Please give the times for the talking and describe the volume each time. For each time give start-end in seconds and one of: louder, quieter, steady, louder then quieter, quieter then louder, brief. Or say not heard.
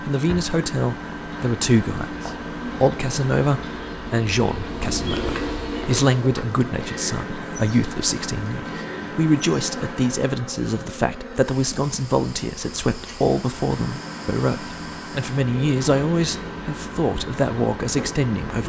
0.0-18.6 steady.